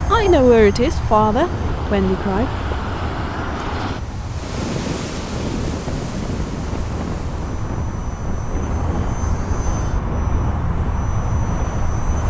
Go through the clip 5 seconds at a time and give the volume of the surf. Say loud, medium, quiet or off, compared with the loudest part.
loud, loud, medium.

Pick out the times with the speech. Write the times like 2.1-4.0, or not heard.
0.1-2.5.